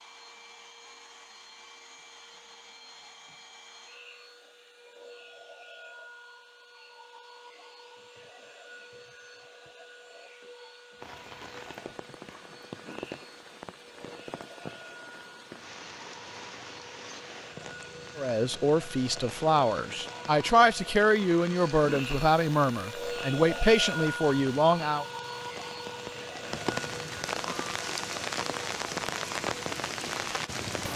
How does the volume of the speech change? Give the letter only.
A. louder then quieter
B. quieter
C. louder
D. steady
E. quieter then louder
D.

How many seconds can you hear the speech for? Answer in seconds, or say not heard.
7 s.